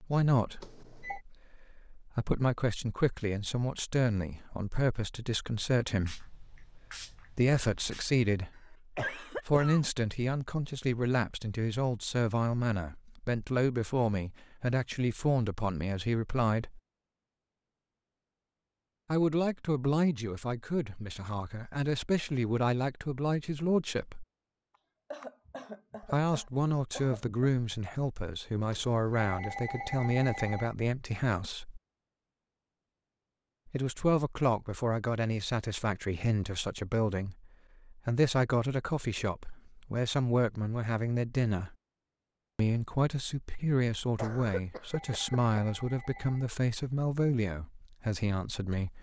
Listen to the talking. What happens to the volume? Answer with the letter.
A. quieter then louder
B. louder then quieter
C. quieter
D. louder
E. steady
E.